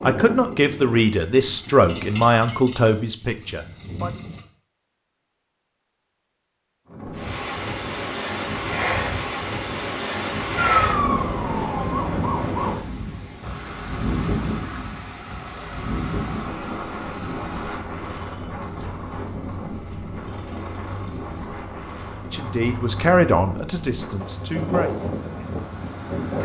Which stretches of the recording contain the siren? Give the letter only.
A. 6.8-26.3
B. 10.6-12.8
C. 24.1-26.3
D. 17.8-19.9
B.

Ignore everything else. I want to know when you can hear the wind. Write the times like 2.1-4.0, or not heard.
6.8-26.3.